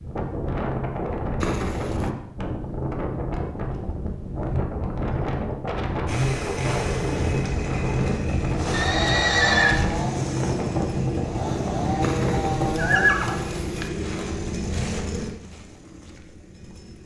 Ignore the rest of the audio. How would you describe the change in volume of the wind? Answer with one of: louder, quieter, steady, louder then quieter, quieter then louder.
steady.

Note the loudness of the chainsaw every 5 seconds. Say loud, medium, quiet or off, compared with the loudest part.
off, loud, loud, medium.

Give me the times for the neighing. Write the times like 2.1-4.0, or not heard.
1.4-2.1, 8.7-9.8, 12.0-13.9.